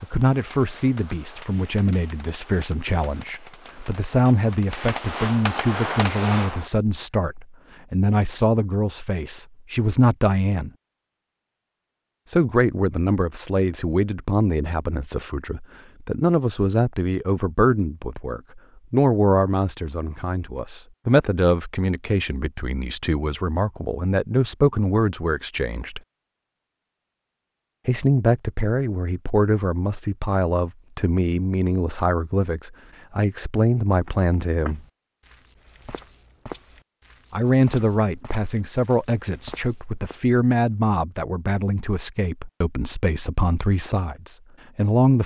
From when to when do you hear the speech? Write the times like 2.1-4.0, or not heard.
0.0-10.7, 12.2-26.0, 27.9-34.8, 37.3-45.2.